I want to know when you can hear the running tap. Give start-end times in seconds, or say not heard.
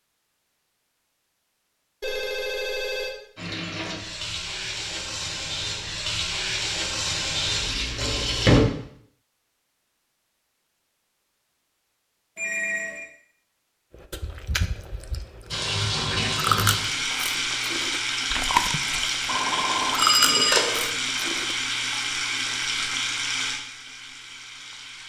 3.4-8.6, 15.5-25.0.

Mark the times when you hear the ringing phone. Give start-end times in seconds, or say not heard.
2.0-3.1, 12.3-13.1, 19.2-20.9.